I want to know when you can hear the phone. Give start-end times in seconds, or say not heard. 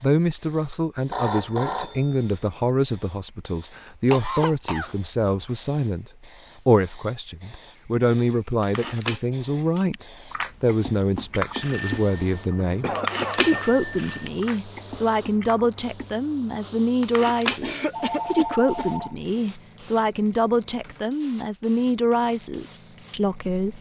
1.1-2.7, 11.5-14.3, 17.9-19.1.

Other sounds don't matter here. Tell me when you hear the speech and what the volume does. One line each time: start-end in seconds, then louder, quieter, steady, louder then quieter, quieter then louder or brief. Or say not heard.
0.0-23.7 steady.